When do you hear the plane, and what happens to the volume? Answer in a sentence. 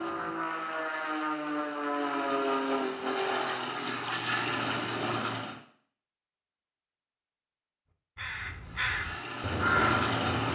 The plane can be heard from 0.0 to 5.6 s, at a steady volume; and briefly from 8.6 to 10.5 s.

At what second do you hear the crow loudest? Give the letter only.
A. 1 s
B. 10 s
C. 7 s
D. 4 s
B.